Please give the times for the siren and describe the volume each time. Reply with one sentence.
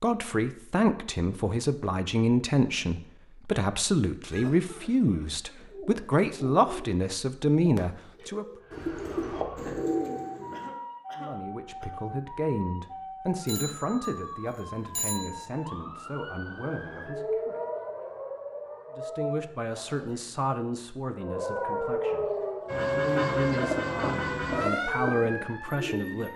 The siren can be heard from 8.6 to 19.6 s, getting louder; and from 21.1 to 26.3 s, getting quieter.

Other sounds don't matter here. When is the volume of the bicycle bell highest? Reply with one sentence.
The volume of the bicycle bell peaks at 15 seconds.